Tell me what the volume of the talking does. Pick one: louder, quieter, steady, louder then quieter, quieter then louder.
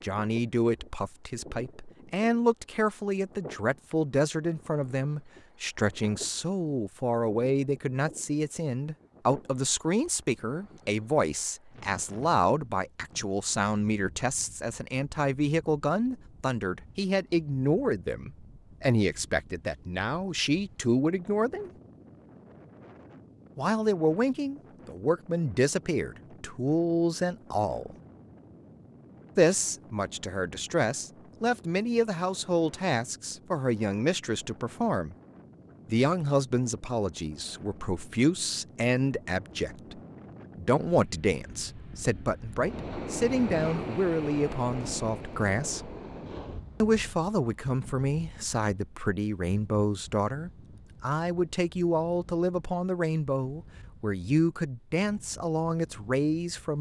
steady.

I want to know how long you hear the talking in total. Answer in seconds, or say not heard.
52 s.